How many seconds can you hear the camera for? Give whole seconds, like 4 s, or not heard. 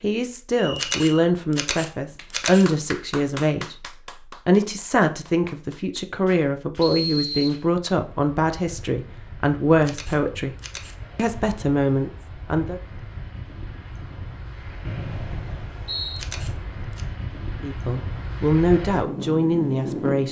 4 s.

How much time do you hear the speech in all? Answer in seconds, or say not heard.
14 s.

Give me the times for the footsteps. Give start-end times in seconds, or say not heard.
not heard.